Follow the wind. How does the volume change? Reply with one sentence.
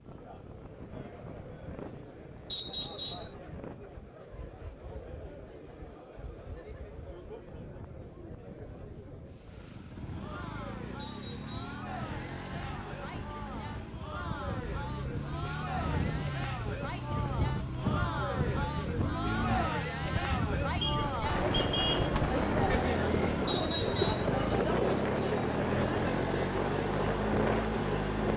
The loudness of the wind goes up.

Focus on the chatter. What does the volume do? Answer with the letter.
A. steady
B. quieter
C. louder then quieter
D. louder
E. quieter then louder
D.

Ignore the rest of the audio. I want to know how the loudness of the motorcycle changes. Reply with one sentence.
The loudness of the motorcycle goes up.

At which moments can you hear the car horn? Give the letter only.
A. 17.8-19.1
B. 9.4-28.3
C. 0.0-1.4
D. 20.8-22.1
D.